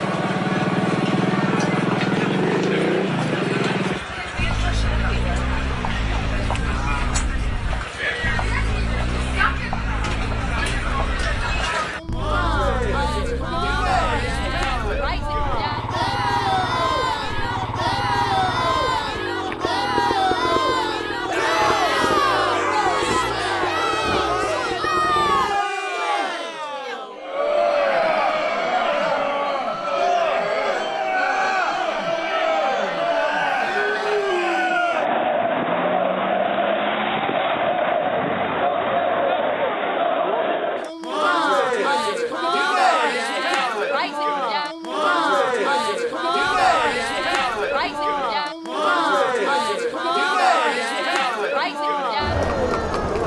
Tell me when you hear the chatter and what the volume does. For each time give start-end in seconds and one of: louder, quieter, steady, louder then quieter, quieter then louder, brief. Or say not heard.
0.0-53.2 louder.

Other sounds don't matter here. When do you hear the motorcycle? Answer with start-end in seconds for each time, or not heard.
0.0-25.6.